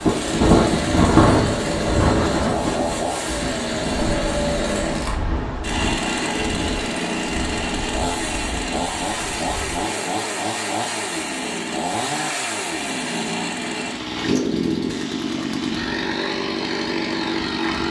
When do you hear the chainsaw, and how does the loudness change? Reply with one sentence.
You can hear the chainsaw from 0.0 to 17.8 s, at a steady volume.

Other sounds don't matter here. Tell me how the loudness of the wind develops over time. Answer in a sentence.
The loudness of the wind goes down.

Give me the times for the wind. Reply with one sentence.
The wind can be heard from 0.0 to 10.2 s.